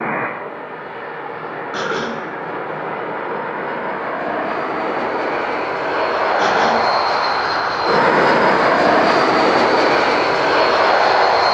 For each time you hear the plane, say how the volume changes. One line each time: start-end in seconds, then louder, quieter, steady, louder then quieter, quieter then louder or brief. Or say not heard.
0.0-11.4 louder.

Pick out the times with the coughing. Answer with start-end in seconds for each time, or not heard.
1.7-2.1, 6.3-6.8.